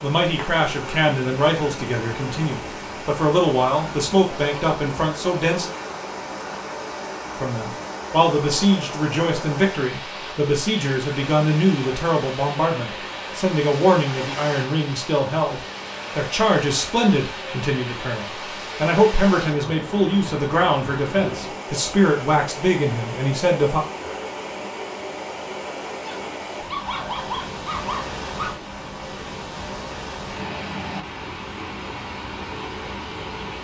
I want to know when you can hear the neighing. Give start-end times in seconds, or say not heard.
not heard.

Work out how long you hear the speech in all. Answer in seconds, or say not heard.
22 s.